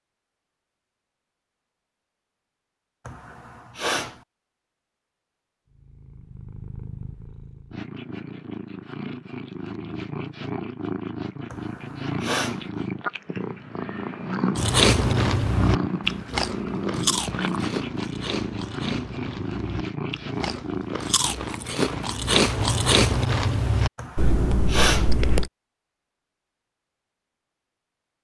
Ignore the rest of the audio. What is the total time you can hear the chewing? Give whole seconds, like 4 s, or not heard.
11 s.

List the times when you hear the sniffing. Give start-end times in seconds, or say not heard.
3.0-4.2, 11.5-12.7, 23.9-25.1.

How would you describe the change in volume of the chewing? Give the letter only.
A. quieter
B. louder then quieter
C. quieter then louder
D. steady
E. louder
C.